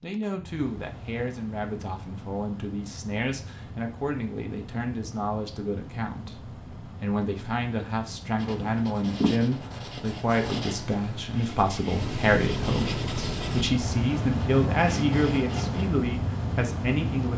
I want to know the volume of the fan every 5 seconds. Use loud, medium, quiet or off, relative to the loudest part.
quiet, quiet, loud, loud.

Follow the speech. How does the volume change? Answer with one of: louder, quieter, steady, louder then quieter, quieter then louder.
louder.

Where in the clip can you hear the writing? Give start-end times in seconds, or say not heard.
8.3-15.9.